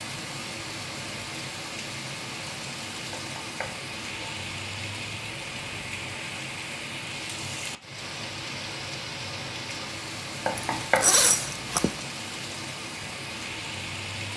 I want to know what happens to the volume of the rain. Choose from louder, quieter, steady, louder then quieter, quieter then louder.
steady.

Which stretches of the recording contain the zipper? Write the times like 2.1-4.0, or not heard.
10.6-11.9.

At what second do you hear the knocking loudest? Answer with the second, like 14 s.
11 s.